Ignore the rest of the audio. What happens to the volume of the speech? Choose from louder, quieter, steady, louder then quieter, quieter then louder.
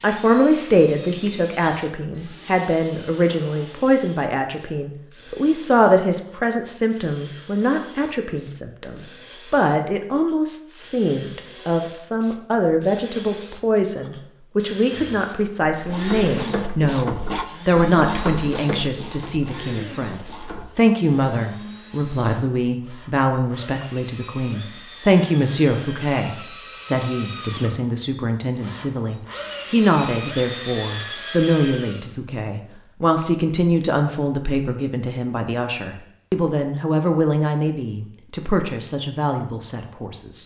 steady.